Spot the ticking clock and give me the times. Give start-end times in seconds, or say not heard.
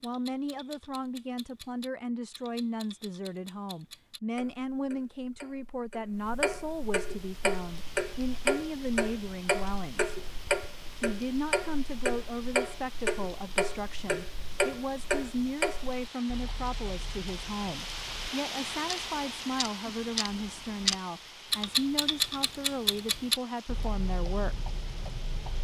0.0-25.5.